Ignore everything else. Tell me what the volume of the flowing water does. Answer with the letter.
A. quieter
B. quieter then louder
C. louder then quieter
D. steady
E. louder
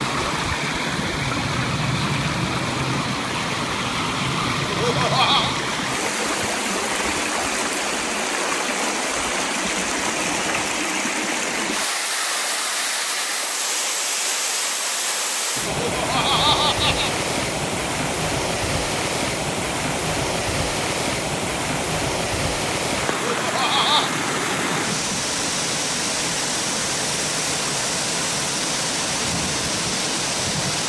D.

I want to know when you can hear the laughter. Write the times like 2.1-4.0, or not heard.
4.7-5.5, 15.8-17.1, 23.1-24.1.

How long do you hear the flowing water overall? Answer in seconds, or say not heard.
31 s.